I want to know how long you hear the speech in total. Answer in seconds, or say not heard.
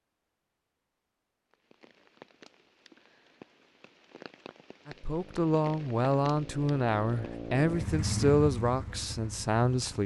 5 s.